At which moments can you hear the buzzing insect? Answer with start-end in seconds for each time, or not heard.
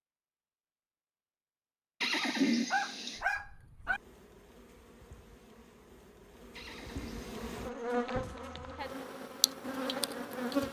3.1-10.6.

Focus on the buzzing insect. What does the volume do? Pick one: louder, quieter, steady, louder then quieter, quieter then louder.
louder.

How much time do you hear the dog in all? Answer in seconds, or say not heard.
2 s.